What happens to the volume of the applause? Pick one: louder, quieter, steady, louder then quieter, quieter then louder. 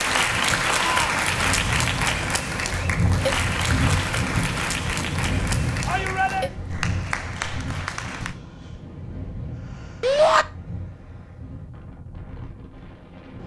quieter.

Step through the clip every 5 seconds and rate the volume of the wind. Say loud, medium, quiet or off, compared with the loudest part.
loud, loud, quiet.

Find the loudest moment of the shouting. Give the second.
10 s.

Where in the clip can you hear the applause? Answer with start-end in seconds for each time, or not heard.
0.0-8.4.